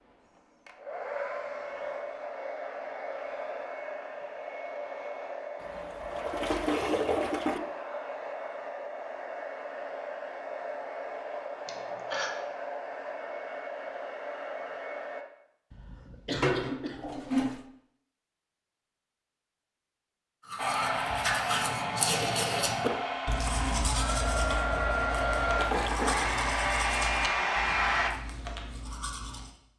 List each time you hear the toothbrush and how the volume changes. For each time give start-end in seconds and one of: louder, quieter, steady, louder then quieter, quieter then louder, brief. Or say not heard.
20.4-29.6 quieter.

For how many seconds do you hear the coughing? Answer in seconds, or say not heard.
2 s.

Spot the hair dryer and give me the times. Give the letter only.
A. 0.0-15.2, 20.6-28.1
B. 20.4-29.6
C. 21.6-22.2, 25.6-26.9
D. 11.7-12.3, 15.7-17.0
A.